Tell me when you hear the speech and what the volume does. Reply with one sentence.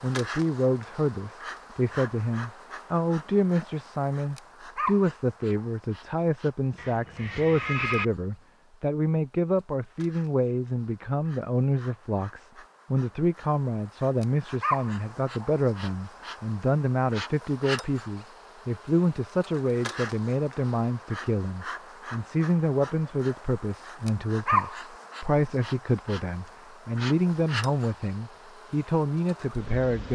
The speech can be heard from 0.0 to 30.1 s, at a steady volume.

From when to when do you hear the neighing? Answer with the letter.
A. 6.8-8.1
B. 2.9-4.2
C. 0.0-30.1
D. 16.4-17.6
A.